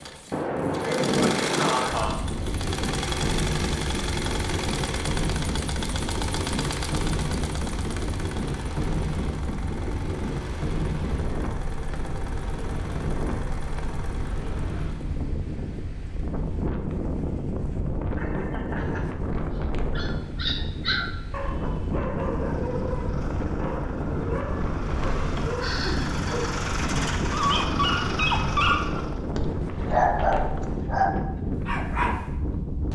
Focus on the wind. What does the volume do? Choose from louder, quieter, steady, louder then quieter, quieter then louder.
steady.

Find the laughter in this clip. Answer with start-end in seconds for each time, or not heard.
0.8-2.1, 18.1-19.1, 25.4-26.5.